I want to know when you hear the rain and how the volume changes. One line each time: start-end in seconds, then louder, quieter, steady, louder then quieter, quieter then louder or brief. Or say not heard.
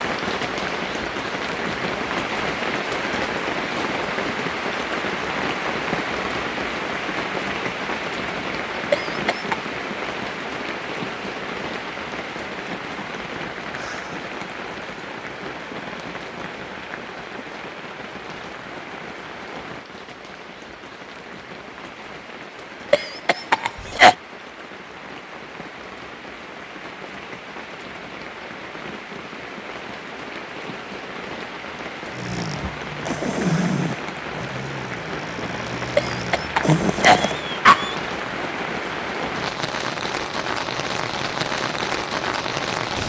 0.0-43.0 quieter then louder.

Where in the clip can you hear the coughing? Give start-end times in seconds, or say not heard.
8.9-9.6, 22.9-24.1, 36.0-38.0.